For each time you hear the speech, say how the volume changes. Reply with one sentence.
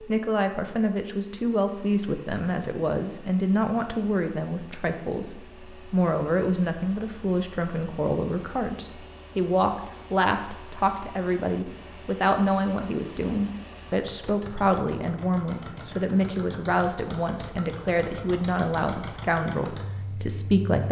You can hear the speech from 0.0 to 20.8 s, at a steady volume.